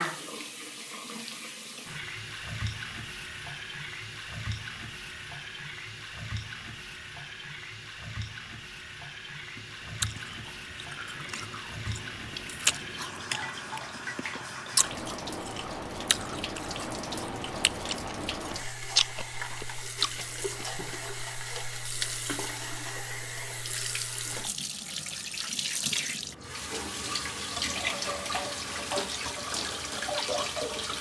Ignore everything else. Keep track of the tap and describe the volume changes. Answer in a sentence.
The volume of the tap goes up.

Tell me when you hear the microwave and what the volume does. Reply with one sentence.
The microwave can't be heard in this clip.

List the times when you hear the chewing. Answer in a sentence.
The chewing can be heard from 9.6 to 20.6 s.